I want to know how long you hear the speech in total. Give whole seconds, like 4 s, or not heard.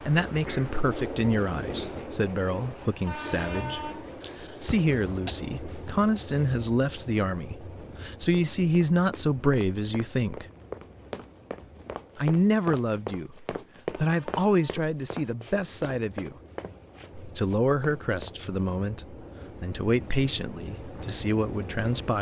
19 s.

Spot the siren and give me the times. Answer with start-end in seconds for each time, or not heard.
not heard.